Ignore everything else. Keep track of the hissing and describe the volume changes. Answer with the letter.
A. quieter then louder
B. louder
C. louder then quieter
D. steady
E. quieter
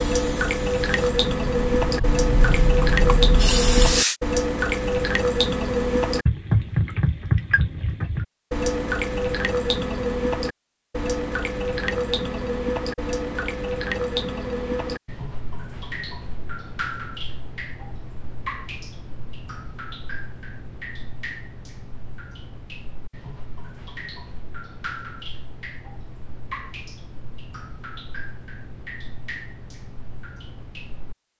B.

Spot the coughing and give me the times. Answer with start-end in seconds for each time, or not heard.
not heard.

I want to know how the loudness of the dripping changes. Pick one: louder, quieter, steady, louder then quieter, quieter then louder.
quieter.